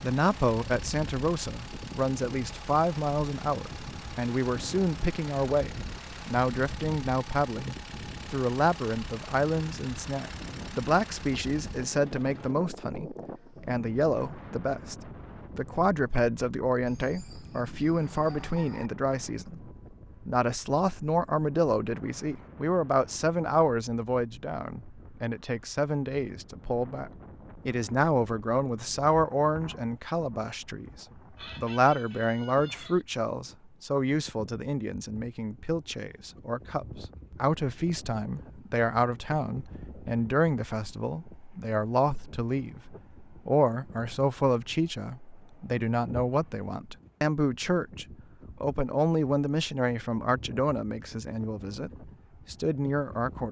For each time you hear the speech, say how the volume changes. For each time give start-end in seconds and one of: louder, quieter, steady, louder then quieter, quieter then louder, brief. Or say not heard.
0.0-53.4 steady.